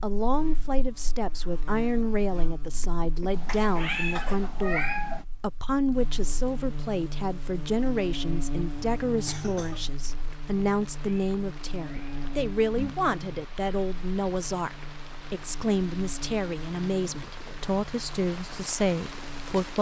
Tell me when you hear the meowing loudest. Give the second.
5 s.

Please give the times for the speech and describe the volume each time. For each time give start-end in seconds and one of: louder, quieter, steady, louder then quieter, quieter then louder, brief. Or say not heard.
0.0-19.7 steady.